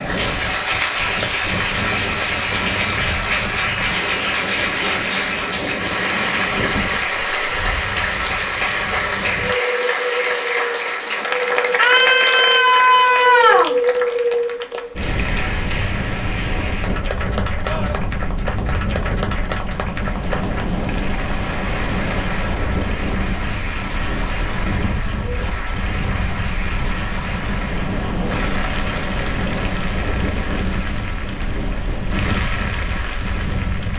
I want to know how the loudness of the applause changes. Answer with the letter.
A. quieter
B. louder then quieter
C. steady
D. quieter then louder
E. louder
A.